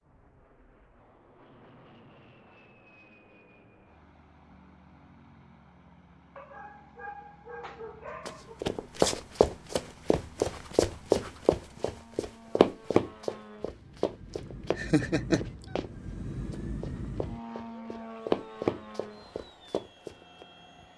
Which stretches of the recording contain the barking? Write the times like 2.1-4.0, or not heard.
6.3-8.6.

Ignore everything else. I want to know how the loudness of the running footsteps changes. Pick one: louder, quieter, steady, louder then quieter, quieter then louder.
quieter then louder.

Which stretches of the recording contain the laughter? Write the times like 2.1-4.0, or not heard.
14.8-15.5.